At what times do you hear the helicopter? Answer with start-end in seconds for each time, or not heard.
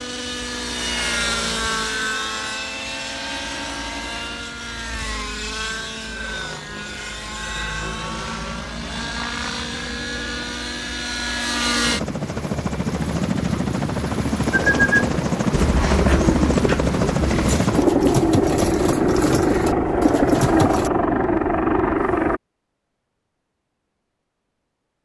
0.0-22.4.